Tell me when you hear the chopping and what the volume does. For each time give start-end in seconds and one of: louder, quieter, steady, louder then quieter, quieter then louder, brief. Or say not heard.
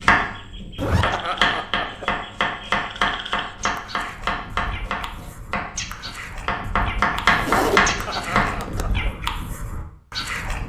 0.0-8.6 quieter then louder.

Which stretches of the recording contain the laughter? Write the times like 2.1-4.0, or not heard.
1.0-2.1, 8.1-9.1.